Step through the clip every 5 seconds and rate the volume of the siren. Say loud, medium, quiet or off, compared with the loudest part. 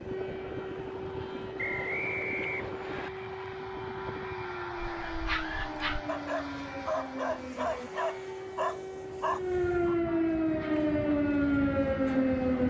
quiet, medium, loud.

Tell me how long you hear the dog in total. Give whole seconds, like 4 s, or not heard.
5 s.